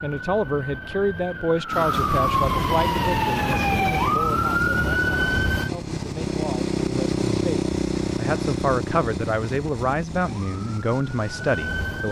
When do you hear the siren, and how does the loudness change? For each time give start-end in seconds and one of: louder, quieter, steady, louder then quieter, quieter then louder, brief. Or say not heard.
0.0-5.7 louder
10.2-12.0 brief.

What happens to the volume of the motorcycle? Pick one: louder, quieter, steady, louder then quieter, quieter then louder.
louder then quieter.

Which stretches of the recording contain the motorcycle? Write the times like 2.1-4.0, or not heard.
1.9-12.0.